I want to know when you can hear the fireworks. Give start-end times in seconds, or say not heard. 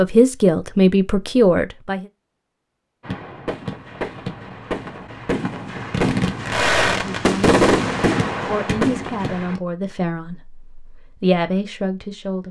3.0-9.6.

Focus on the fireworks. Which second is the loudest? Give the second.
8 s.